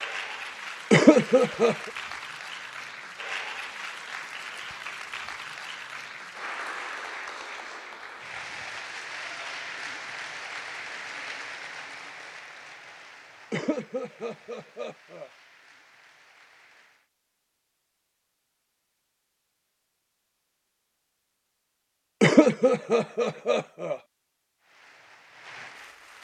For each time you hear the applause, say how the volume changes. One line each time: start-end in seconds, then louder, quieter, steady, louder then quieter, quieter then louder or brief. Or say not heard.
0.0-17.1 quieter
24.6-26.1 brief.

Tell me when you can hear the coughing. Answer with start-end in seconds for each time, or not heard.
0.9-1.9, 13.5-15.3, 22.2-24.0.